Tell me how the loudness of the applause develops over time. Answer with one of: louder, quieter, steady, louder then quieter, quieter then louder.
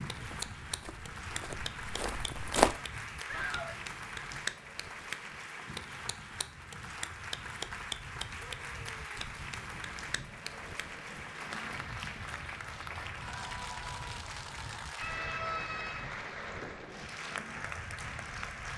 steady.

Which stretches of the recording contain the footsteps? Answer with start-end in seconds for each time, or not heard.
0.1-2.8.